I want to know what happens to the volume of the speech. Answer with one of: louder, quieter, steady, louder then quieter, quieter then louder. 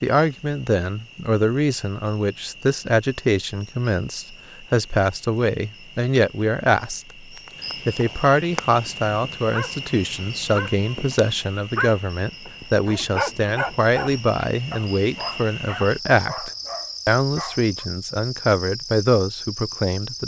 steady.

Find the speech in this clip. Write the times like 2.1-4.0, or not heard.
0.0-7.2, 7.8-20.2.